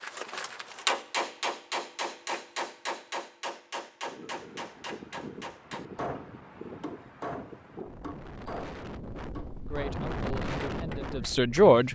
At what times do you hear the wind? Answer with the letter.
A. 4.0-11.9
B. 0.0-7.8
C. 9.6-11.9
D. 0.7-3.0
A.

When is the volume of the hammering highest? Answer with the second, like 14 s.
1 s.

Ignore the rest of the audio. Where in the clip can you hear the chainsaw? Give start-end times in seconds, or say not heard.
not heard.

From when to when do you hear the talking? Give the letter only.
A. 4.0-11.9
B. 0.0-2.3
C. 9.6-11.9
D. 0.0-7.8
C.